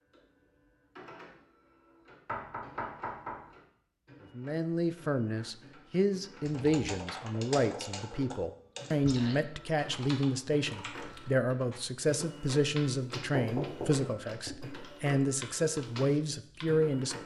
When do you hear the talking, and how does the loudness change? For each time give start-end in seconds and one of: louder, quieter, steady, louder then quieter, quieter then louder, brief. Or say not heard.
4.3-17.2 steady.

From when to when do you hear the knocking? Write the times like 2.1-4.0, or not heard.
2.2-3.4, 13.3-14.1.